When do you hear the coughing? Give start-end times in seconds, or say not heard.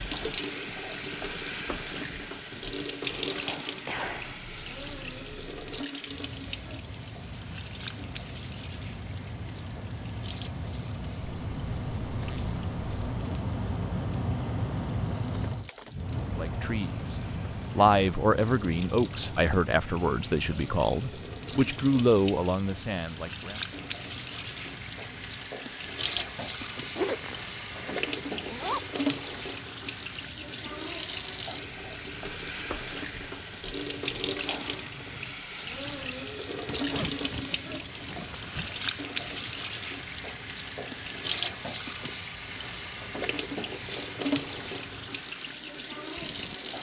3.0-4.5.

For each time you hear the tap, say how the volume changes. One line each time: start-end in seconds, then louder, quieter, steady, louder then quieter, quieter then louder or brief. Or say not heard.
0.0-46.7 quieter then louder.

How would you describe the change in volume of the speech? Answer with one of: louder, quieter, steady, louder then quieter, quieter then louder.
steady.